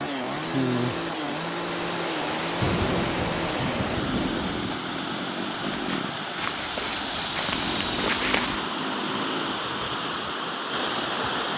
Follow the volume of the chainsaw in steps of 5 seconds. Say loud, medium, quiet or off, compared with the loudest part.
loud, loud, off.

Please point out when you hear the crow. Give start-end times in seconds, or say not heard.
not heard.